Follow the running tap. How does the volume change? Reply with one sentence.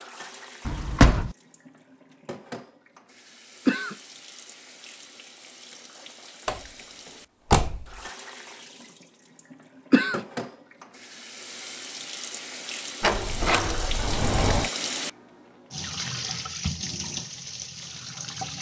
The loudness of the running tap goes up.